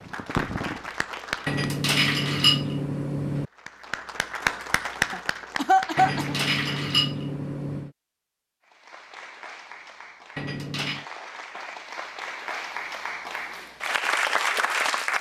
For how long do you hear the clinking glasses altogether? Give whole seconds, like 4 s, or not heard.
5 s.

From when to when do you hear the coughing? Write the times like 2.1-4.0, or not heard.
5.1-6.3.